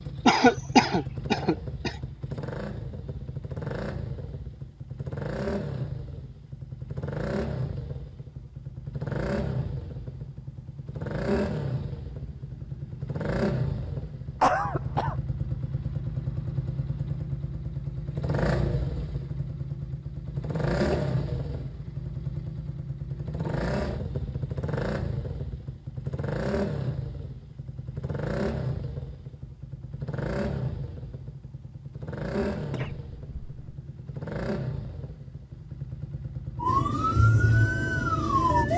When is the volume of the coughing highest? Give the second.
1 s.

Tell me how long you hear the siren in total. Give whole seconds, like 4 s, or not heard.
2 s.